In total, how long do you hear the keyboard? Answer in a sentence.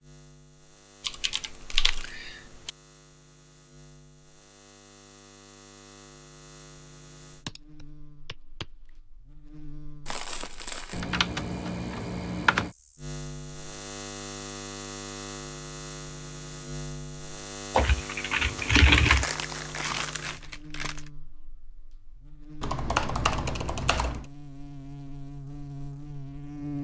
You can hear the keyboard for 8 seconds altogether.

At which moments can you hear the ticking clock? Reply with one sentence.
The ticking clock can't be heard in this clip.